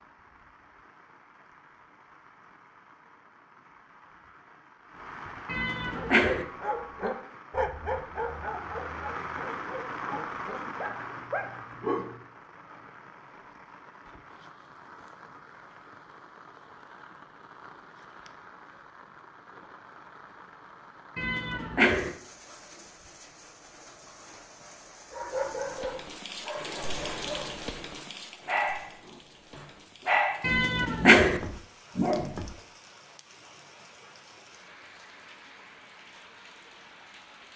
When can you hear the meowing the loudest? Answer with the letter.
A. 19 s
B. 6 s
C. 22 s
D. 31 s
D.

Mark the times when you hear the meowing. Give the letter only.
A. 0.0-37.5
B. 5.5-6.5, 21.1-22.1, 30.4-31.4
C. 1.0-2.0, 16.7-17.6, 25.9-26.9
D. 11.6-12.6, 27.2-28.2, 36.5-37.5
B.